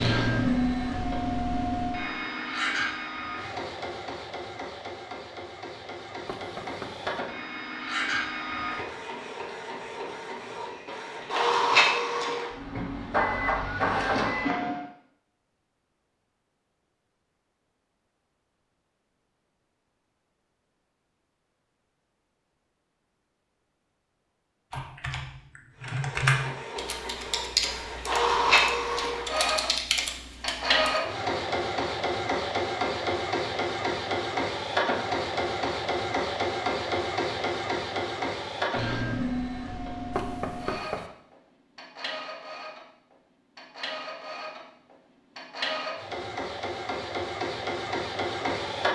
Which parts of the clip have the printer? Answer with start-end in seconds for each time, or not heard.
0.0-14.8, 25.9-48.9.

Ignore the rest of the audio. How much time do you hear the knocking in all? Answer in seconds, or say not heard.
2 s.